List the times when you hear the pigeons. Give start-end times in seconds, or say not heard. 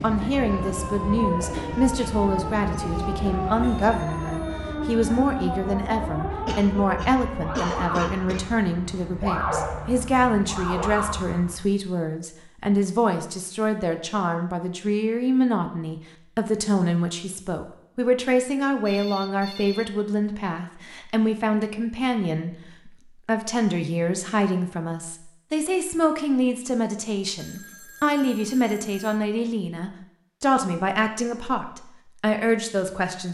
not heard.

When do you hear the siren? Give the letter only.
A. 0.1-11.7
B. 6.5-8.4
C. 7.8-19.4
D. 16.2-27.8
A.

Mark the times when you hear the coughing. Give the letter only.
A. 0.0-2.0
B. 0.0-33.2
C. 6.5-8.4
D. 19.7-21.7
C.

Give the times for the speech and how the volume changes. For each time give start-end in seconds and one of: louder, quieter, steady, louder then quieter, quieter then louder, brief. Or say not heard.
0.0-33.2 steady.